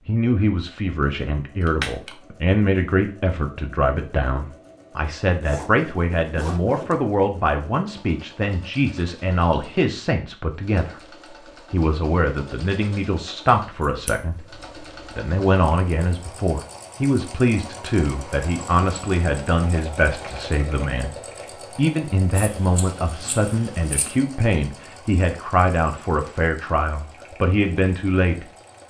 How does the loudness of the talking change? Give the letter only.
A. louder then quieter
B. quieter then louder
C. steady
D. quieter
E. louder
C.